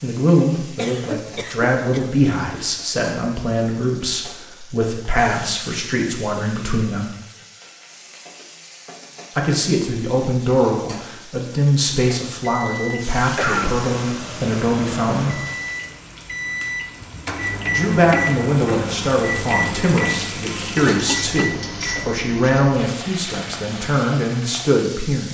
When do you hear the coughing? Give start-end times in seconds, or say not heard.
0.8-2.1, 13.3-13.8, 20.8-21.6.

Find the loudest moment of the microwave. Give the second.
18 s.